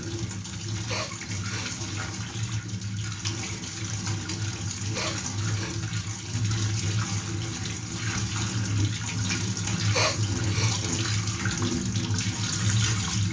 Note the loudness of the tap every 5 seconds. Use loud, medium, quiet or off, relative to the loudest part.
medium, loud, loud.